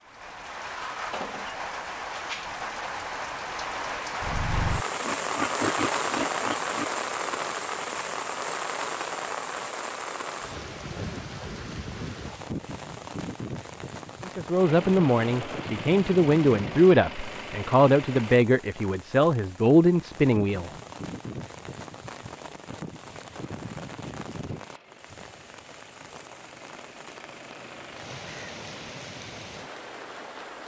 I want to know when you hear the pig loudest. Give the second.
6 s.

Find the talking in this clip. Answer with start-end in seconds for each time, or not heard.
14.2-20.7.